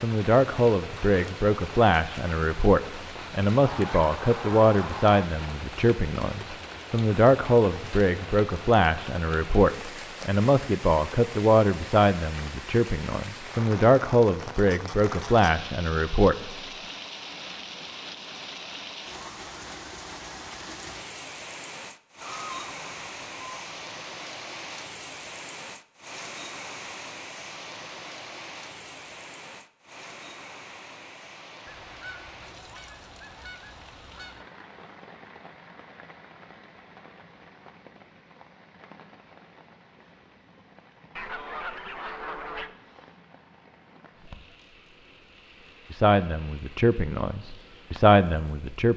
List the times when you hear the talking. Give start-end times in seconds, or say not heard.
0.0-16.5, 45.9-48.9.